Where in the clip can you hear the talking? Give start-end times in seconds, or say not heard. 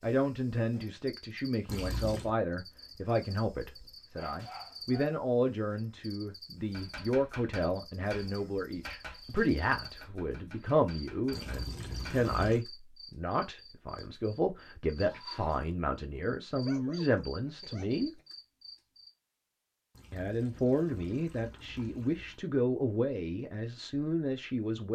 0.0-18.1, 20.1-24.9.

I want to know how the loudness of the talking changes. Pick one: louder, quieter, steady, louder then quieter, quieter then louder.
steady.